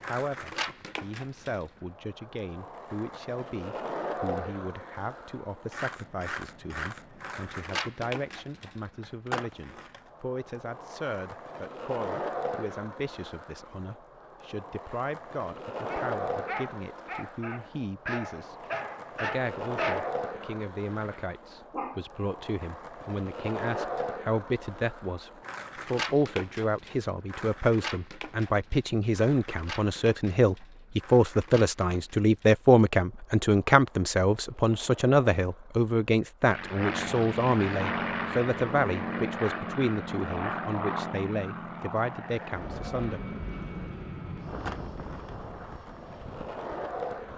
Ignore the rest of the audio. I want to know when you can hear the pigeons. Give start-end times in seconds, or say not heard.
not heard.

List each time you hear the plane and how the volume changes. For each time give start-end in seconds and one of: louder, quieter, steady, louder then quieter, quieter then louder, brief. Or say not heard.
36.5-47.3 quieter.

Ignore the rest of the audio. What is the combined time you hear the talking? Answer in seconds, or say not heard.
43 s.